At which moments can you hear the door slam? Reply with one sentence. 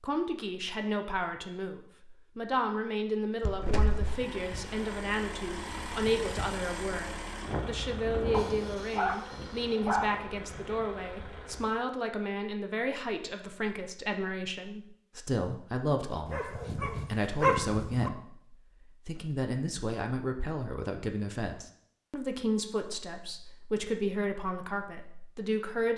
You can hear the door slam from 3.4 to 4.2 s.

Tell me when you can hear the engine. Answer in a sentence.
The engine can be heard from 4.0 to 11.8 s.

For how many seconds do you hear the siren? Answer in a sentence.
You can't hear the siren here.